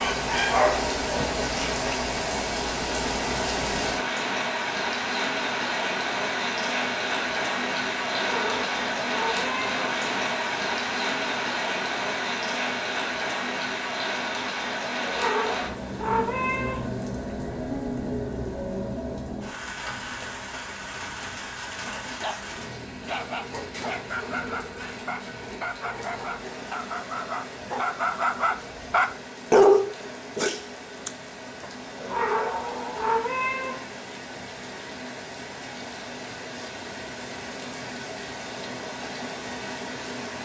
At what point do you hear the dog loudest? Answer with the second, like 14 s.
30 s.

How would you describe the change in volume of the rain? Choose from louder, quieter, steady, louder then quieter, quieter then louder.
quieter.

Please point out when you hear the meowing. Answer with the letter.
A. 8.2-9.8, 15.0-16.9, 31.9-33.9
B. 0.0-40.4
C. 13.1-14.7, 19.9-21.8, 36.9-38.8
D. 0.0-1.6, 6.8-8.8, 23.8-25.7
A.